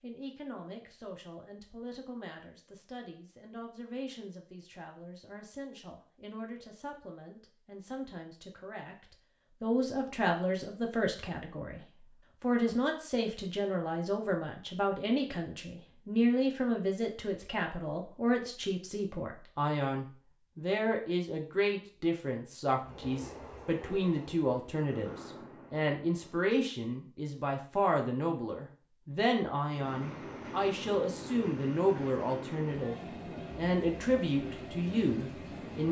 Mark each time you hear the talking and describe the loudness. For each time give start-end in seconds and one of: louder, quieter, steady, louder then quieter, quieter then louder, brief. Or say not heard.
0.0-35.8 louder.